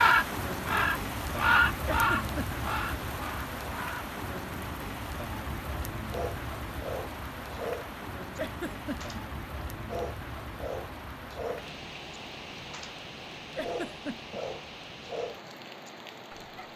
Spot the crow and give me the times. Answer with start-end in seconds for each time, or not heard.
0.0-4.1.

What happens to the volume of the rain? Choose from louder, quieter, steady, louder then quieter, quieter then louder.
quieter.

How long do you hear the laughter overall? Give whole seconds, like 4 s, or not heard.
2 s.